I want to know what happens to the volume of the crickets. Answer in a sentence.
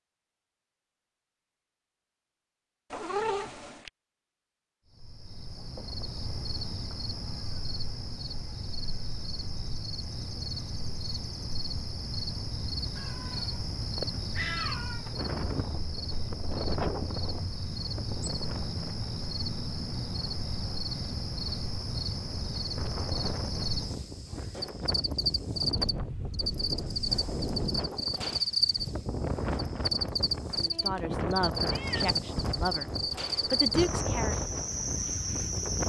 The loudness of the crickets goes up.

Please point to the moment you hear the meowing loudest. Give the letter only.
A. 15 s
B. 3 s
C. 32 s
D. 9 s
B.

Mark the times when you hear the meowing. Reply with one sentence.
The meowing can be heard from 2.9 to 3.9 s, from 12.9 to 15.1 s and from 30.6 to 32.1 s.